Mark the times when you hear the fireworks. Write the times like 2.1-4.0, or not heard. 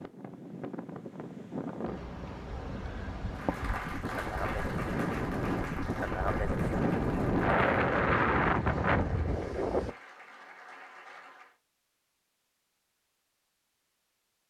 not heard.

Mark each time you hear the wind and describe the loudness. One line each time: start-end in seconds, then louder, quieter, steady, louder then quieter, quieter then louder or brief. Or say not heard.
0.0-9.9 louder.